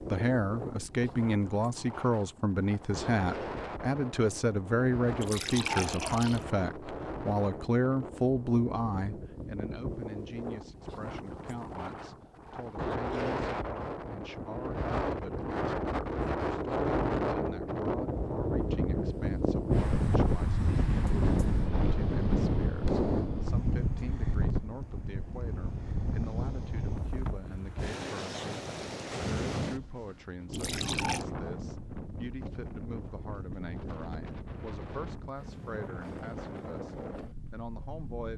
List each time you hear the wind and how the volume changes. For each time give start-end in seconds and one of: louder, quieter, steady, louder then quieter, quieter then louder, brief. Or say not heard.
0.0-38.3 louder then quieter.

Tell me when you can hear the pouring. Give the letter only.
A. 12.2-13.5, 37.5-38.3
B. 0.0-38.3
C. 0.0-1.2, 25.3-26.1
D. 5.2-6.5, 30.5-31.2
D.